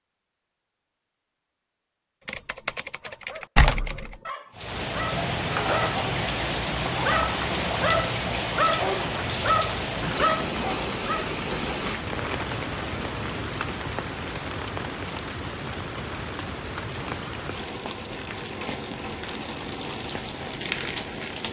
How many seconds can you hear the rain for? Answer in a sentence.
The rain can be heard for 17 seconds in total.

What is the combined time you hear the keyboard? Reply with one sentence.
The keyboard can be heard for 2 seconds in total.